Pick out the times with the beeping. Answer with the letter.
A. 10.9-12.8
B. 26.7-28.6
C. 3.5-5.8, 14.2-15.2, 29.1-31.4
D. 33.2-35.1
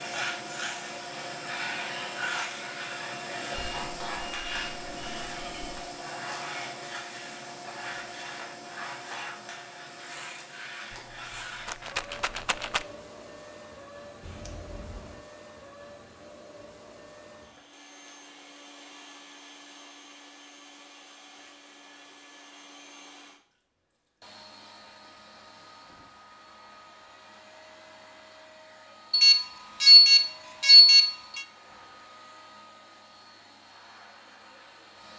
C.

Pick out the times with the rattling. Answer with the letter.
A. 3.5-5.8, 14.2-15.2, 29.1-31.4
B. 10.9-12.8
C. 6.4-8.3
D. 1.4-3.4
B.